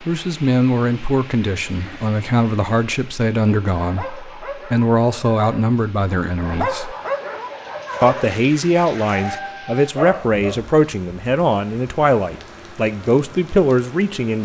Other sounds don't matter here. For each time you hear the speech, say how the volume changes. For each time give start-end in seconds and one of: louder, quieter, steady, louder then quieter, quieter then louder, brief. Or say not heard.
0.1-7.0 steady
8.0-14.4 steady.